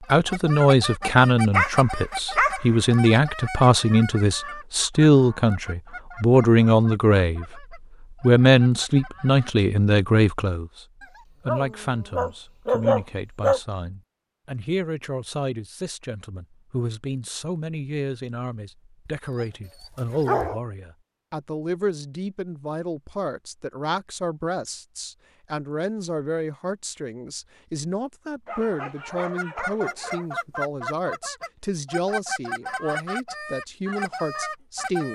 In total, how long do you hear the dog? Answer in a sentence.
You can hear the dog for 7 seconds altogether.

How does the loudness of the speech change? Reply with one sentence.
The volume of the speech goes down.